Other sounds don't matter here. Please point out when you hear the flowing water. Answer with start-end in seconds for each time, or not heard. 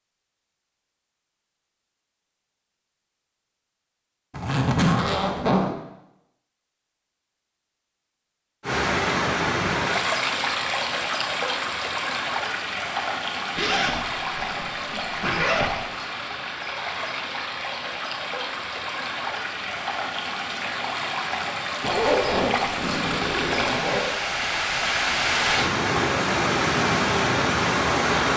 8.6-28.3.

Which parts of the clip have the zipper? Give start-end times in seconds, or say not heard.
4.3-5.8, 13.6-15.8, 21.8-24.1.